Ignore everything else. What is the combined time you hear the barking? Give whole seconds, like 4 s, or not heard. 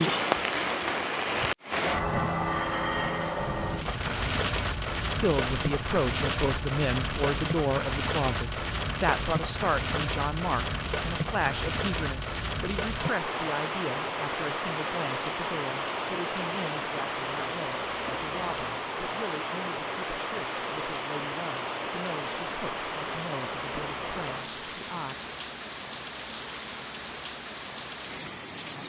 not heard.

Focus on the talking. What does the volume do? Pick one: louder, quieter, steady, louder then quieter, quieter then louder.
quieter.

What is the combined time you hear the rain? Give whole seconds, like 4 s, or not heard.
29 s.